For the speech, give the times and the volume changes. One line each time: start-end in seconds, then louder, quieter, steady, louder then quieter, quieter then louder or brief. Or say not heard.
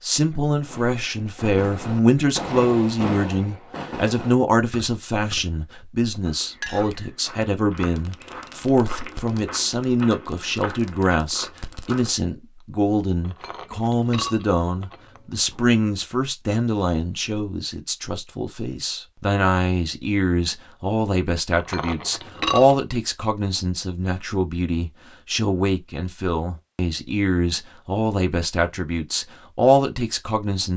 0.0-30.7 steady.